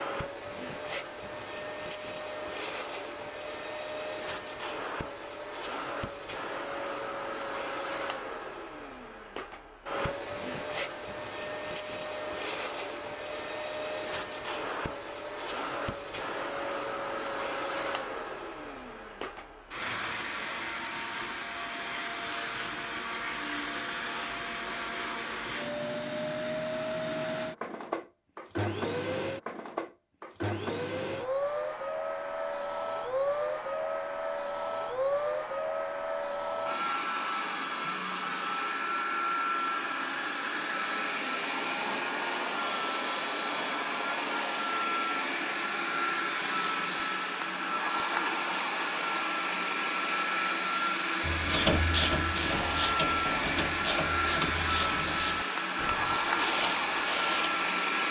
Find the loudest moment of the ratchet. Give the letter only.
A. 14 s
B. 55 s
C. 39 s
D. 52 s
D.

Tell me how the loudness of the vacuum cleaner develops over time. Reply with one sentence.
The volume of the vacuum cleaner goes up.